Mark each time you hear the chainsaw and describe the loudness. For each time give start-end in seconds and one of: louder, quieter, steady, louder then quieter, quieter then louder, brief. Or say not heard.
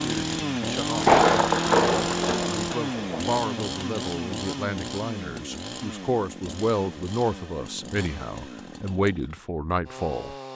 0.0-10.5 quieter.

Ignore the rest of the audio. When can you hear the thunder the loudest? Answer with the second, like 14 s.
1 s.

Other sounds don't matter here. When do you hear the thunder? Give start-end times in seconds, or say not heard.
0.9-3.4.